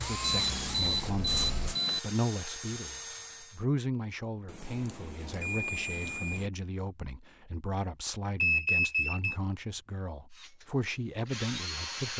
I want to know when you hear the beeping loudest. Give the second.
9 s.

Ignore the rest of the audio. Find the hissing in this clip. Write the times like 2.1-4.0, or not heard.
0.0-1.8.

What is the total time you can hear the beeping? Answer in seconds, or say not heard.
5 s.